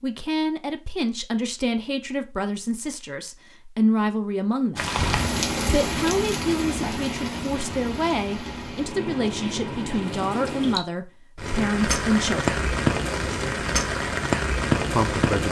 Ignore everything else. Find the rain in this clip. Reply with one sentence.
You can hear the rain from 4.8 to 15.4 s.